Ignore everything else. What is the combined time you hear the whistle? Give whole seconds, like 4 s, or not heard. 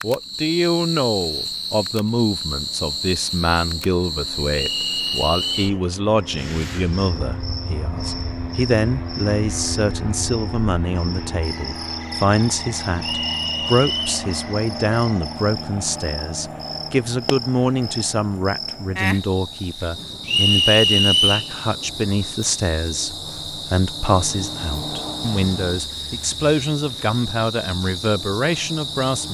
4 s.